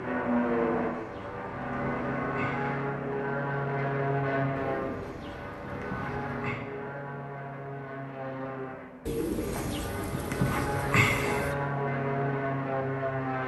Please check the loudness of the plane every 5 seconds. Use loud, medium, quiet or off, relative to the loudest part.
loud, medium, loud.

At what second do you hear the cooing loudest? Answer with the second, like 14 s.
11 s.